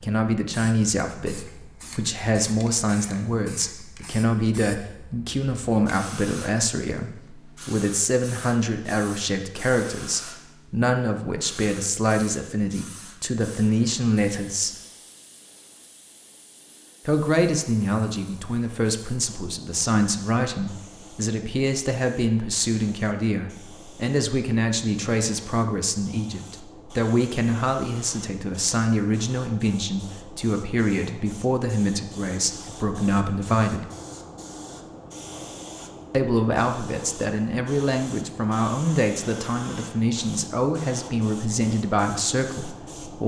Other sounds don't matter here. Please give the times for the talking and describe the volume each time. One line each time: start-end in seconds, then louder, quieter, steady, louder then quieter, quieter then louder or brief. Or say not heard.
0.0-14.8 steady
17.1-33.9 steady
36.1-43.2 steady.